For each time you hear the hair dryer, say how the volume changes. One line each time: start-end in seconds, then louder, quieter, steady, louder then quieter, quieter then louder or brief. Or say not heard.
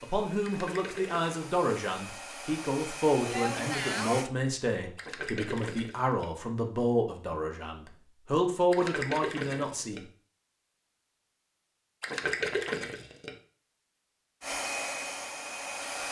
0.0-4.3 louder
14.4-16.0 brief.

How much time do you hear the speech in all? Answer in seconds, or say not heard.
10 s.